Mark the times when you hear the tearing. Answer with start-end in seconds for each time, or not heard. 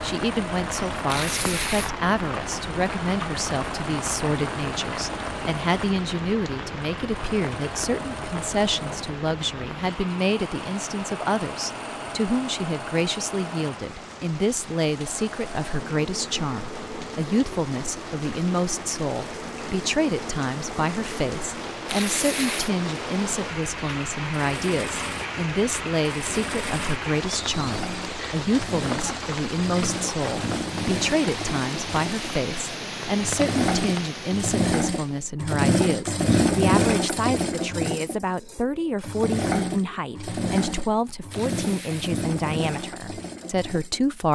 1.1-1.9, 21.9-22.7, 41.3-42.1.